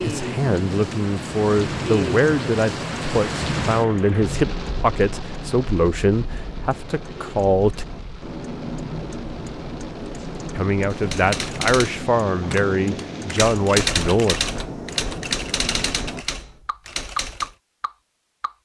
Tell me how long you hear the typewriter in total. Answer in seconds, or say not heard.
7 s.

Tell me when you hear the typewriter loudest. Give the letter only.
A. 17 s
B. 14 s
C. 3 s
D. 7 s
B.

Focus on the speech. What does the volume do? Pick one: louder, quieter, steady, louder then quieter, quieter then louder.
steady.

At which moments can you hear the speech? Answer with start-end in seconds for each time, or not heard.
0.0-7.8, 10.6-14.3.